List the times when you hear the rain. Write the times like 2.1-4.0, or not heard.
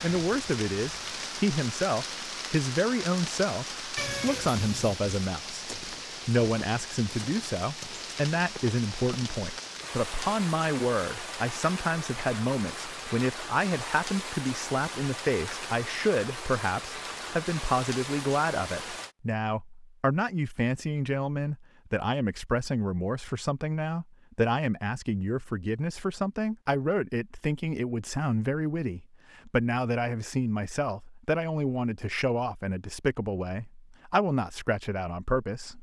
0.0-19.1.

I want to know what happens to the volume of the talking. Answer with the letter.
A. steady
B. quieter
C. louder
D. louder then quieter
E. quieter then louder
A.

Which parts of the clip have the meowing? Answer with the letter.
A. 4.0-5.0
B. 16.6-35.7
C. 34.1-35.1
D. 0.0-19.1
A.